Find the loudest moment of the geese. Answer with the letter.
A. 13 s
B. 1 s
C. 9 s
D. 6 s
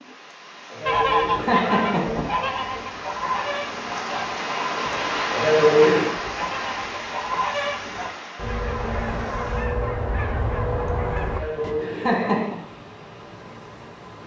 B.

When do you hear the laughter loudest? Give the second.
6 s.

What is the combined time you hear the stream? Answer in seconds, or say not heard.
14 s.